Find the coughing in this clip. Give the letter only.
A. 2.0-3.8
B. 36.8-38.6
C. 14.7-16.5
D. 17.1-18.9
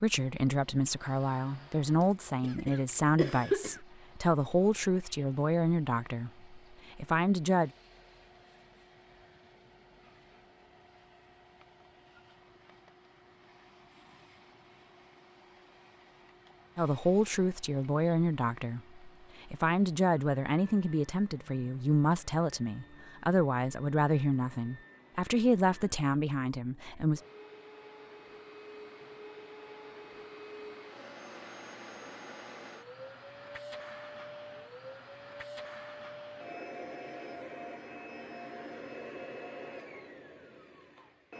A.